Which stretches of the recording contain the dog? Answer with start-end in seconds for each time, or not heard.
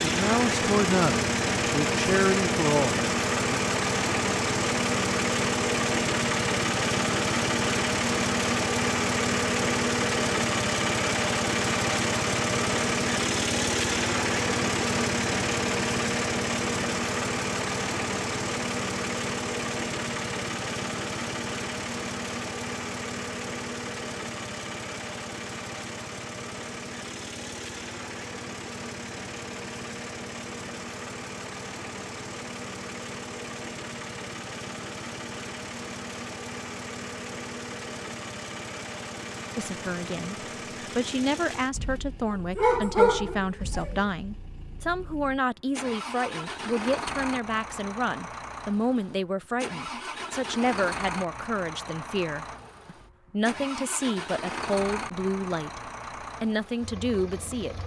42.3-44.0.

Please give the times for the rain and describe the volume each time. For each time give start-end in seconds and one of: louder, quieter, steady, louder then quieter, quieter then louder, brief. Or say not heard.
not heard.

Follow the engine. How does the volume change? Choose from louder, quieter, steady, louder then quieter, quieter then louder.
quieter.